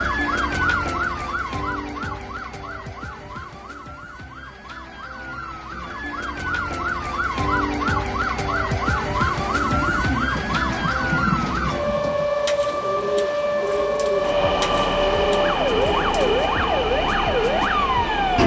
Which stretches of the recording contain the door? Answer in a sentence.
The door can't be heard in this clip.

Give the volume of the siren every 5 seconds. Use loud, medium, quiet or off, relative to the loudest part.
medium, loud, loud, loud.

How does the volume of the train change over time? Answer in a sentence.
The loudness of the train stays about the same.